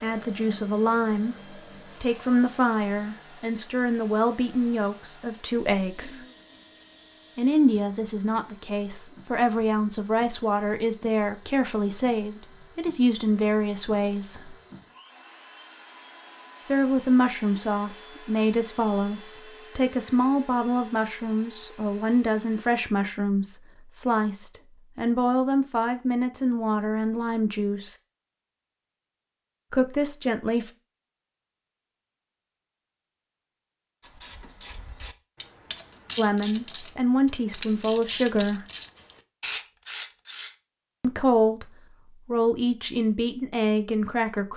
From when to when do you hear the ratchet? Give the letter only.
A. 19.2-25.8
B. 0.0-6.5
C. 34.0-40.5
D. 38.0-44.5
C.